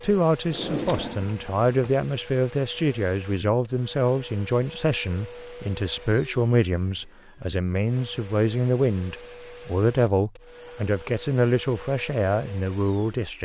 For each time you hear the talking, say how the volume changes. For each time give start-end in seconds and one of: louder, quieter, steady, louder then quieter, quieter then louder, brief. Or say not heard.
0.0-13.3 steady.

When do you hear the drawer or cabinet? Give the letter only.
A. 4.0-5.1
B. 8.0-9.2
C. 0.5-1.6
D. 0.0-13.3
C.